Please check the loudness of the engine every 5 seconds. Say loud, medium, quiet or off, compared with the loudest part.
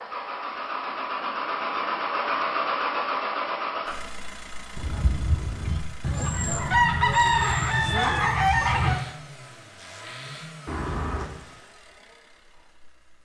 loud, quiet, quiet.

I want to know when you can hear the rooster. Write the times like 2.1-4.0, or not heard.
6.0-9.1.